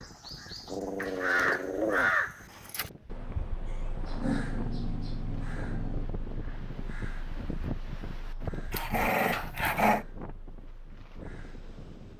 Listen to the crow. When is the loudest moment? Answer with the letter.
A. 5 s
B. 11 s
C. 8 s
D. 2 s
D.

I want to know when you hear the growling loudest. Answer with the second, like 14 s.
10 s.